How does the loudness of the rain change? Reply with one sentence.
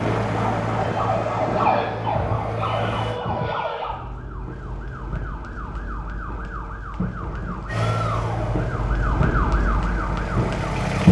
The volume of the rain goes down, then up.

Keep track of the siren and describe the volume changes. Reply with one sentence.
The volume of the siren goes down, then up.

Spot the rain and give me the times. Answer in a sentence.
The rain can be heard from 0.0 to 11.0 s.